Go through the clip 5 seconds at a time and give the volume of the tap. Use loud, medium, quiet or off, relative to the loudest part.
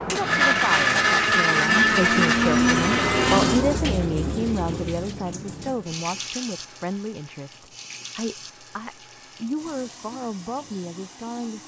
loud, medium, quiet.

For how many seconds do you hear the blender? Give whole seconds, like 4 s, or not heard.
4 s.